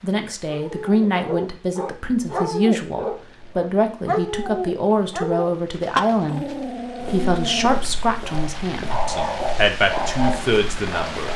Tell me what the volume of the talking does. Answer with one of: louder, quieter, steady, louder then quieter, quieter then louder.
steady.